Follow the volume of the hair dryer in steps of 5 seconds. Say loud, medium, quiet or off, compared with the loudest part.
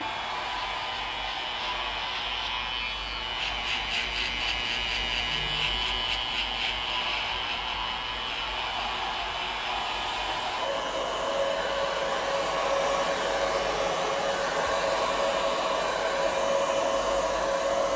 medium, medium, loud, loud.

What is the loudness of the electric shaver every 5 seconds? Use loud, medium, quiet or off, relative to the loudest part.
loud, loud, medium, medium.